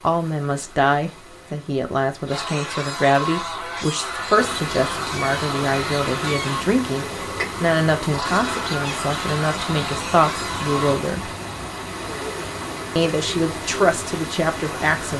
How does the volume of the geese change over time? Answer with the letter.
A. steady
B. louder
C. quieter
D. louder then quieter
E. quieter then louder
A.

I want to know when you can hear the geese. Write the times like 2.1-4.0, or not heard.
2.2-11.0.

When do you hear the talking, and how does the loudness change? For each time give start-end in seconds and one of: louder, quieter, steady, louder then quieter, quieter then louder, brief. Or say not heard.
0.0-11.3 steady
12.9-15.1 brief.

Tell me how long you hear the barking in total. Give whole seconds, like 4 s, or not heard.
not heard.